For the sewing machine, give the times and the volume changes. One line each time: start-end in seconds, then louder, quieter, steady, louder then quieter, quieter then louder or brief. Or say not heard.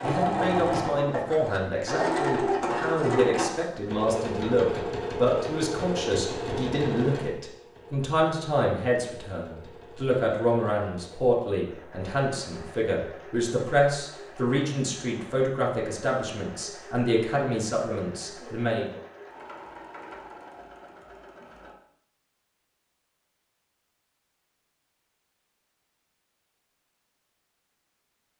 0.0-21.8 quieter.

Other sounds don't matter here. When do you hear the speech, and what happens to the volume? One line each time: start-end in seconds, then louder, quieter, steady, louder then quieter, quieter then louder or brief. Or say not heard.
0.0-19.0 steady.